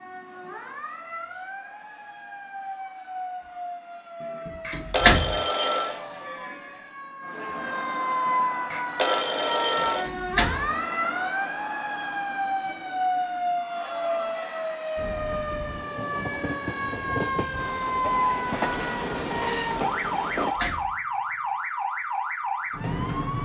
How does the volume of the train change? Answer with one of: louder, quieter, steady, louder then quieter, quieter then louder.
louder.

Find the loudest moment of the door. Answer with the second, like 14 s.
5 s.